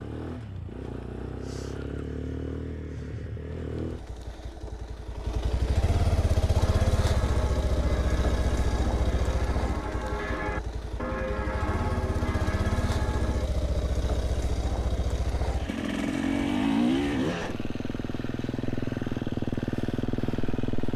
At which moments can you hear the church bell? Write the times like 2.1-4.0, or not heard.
6.6-13.4.